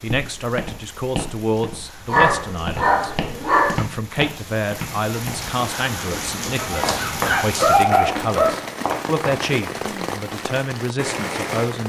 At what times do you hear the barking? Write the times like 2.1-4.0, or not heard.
2.1-3.8, 6.5-8.6.